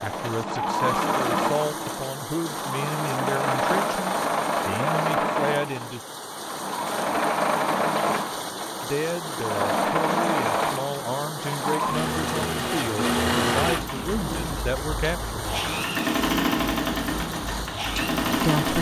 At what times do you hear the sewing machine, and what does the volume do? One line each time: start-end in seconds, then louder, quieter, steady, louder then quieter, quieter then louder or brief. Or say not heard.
0.0-18.7 steady.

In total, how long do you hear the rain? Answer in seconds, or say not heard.
19 s.